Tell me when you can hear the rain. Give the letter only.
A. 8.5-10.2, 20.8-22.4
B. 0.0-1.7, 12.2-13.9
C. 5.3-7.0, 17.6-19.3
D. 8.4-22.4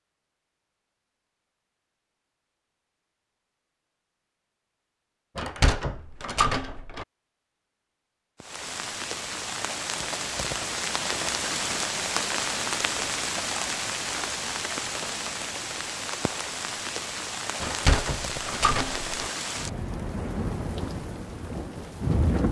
D.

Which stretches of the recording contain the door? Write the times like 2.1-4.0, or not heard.
5.3-7.0, 17.6-19.3.